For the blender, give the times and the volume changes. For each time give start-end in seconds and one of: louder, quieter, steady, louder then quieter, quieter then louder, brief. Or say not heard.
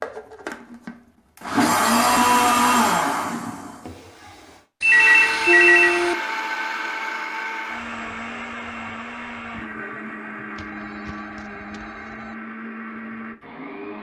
0.0-13.9 quieter.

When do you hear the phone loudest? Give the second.
6 s.